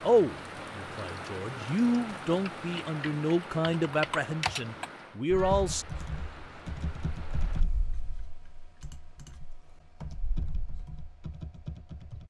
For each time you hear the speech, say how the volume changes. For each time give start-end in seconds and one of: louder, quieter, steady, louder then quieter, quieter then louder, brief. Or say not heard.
0.0-5.8 louder.